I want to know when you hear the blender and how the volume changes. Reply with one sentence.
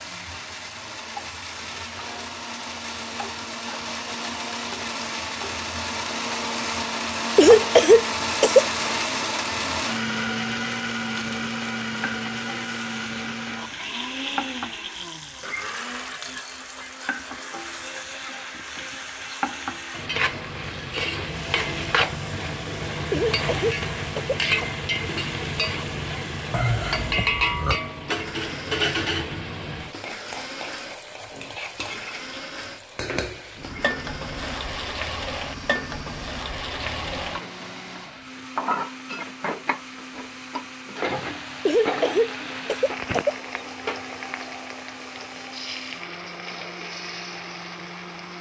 You can hear the blender from 0.0 to 48.3 s, getting quieter.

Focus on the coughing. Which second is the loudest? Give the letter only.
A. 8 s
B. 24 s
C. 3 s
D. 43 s
A.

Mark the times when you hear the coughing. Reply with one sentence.
You can hear the coughing from 7.3 to 8.7 s, from 23.1 to 24.7 s and from 41.6 to 43.4 s.